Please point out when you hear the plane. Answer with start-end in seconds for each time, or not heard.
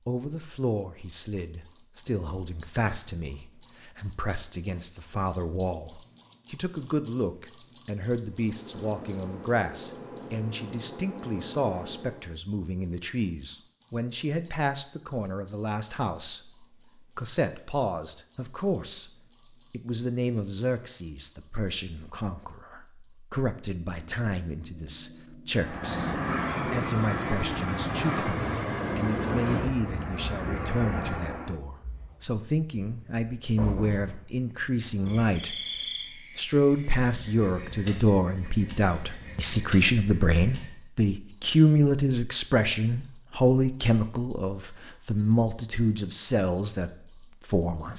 8.2-12.3, 25.5-31.6.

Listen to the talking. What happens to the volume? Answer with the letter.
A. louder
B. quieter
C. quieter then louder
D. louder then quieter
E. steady
A.